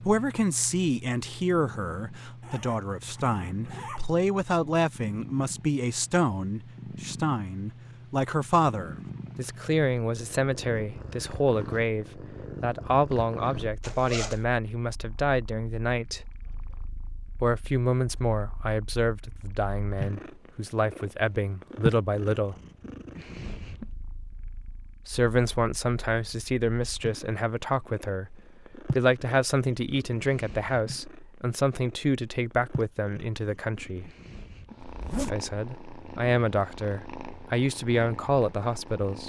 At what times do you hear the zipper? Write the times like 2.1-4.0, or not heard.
2.4-4.1, 13.8-14.4, 34.8-35.5.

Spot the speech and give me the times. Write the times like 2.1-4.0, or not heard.
0.0-16.2, 17.4-22.6, 25.1-34.1, 35.1-39.2.